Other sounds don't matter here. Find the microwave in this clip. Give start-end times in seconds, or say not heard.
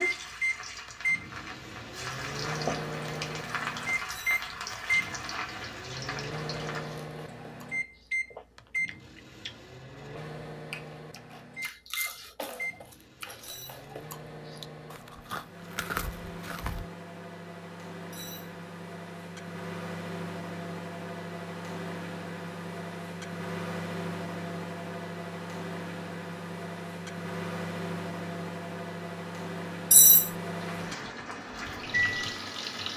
0.0-32.9.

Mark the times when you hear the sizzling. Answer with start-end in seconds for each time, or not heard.
0.0-7.0, 30.5-32.9.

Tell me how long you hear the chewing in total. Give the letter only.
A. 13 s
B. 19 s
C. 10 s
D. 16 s
C.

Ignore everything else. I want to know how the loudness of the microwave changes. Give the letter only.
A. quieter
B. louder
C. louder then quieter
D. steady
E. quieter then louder
E.